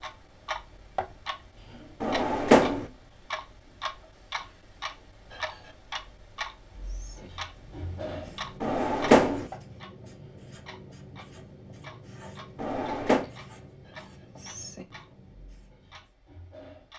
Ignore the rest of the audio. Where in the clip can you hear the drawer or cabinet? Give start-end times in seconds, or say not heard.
2.0-2.9, 8.6-9.4, 12.6-13.2.